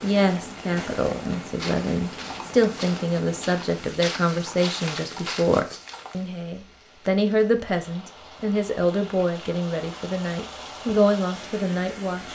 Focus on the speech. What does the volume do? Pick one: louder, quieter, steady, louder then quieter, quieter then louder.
steady.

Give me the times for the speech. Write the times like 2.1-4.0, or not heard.
0.0-12.3.